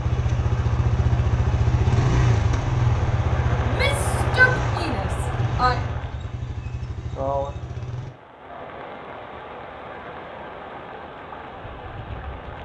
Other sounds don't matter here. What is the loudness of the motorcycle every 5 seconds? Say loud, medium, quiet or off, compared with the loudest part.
loud, medium, off.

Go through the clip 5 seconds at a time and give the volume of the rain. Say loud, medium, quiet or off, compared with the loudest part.
loud, loud, medium.